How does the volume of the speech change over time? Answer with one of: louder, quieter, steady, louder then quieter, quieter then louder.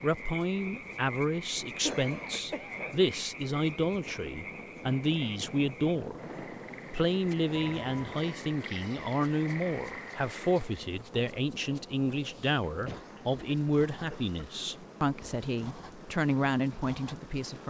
steady.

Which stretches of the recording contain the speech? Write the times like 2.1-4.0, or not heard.
0.0-6.2, 6.9-17.6.